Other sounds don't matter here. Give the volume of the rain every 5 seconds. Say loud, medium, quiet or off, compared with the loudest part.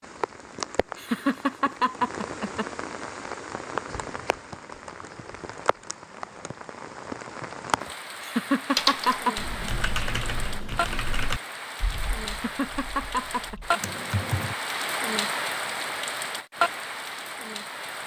medium, medium, loud, loud.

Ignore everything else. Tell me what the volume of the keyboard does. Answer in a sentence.
The volume of the keyboard goes down, then up.